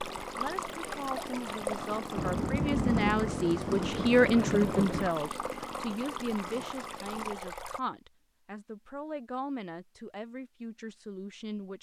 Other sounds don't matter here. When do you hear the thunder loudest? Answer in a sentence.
The loudest moment of the thunder is at 3 seconds.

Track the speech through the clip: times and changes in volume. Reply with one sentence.
You can hear the speech from 0.3 to 11.7 s, getting louder then quieter.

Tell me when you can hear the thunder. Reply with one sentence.
You can hear the thunder from 2.1 to 5.1 s.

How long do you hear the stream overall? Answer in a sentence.
You can hear the stream for 8 seconds altogether.